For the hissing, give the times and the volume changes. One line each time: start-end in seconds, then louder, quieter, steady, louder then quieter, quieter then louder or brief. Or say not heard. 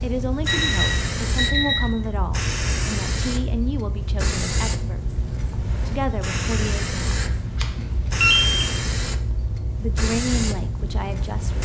0.0-11.6 steady.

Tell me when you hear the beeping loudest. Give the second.
8 s.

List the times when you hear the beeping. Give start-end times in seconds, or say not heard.
0.5-1.9, 7.2-8.7.